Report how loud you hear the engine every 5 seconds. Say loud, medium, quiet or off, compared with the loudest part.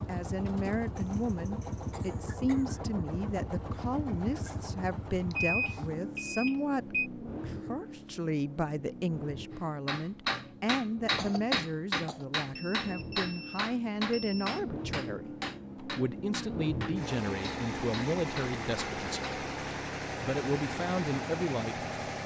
loud, medium, medium, loud, loud.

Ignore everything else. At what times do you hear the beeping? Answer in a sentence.
The beeping can be heard from 5.3 to 7.1 s and from 12.6 to 14.6 s.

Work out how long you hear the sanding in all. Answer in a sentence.
You can't hear the sanding here.